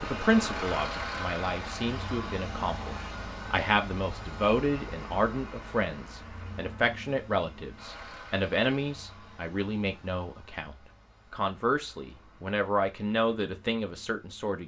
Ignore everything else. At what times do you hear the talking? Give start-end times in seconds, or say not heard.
0.0-14.6.